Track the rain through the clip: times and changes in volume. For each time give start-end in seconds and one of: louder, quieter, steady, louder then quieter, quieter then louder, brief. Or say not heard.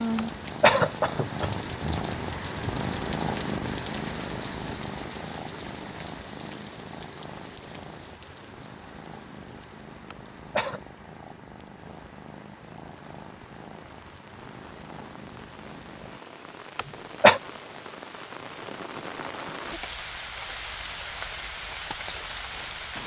0.0-23.0 quieter then louder.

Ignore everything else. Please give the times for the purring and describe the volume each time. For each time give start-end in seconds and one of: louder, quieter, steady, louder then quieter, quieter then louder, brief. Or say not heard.
0.0-16.2 quieter.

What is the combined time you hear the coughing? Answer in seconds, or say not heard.
3 s.